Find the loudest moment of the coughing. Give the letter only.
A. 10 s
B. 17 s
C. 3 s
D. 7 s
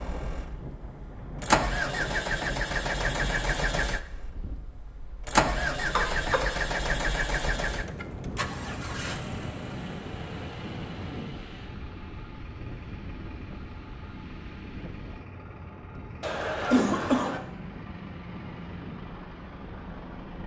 B.